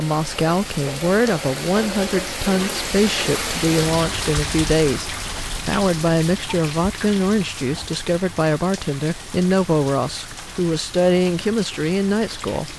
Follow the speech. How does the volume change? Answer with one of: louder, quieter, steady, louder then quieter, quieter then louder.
steady.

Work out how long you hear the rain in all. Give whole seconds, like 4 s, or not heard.
13 s.